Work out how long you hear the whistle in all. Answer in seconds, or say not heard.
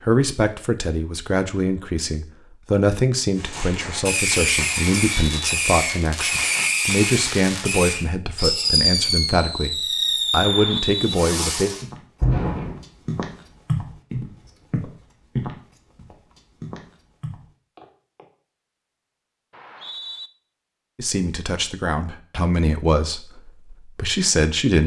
2 s.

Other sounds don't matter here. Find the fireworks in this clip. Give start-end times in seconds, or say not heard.
3.4-12.8.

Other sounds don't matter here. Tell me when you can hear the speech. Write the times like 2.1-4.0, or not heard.
0.0-11.7, 20.9-24.8.